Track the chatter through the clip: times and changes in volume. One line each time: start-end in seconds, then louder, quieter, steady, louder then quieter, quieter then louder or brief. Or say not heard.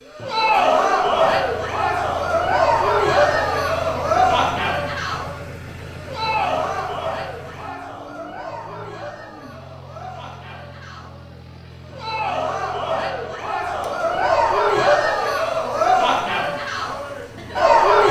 0.1-18.0 quieter then louder.